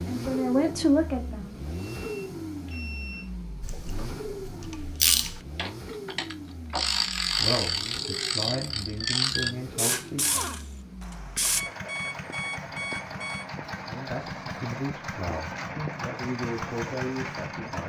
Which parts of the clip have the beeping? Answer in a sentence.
You can hear the beeping from 1.9 to 3.3 s and from 11.6 to 13.4 s.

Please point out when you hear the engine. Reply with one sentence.
The engine can be heard from 0.0 to 17.8 s.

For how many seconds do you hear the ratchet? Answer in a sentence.
You can hear the ratchet for 8 seconds altogether.